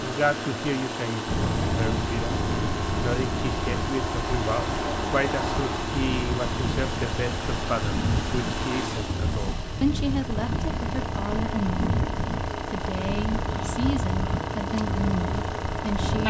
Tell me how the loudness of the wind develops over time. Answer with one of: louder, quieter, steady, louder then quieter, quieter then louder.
steady.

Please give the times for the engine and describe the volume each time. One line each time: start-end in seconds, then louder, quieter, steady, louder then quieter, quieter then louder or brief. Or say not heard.
0.0-16.2 steady.